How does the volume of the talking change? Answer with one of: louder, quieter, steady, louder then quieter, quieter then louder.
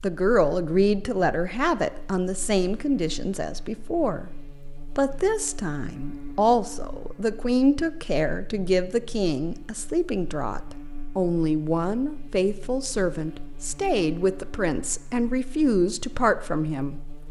steady.